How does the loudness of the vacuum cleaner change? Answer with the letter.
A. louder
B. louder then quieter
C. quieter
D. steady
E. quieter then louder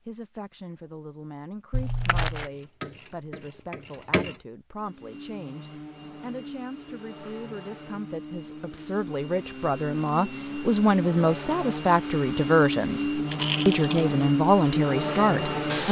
A.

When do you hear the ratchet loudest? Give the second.
4 s.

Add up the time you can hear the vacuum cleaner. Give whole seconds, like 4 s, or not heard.
11 s.